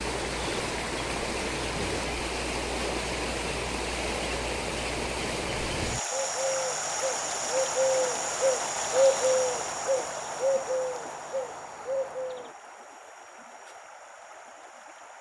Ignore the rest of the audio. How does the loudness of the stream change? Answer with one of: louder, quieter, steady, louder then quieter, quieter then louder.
quieter.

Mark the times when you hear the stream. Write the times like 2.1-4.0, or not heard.
0.0-15.1.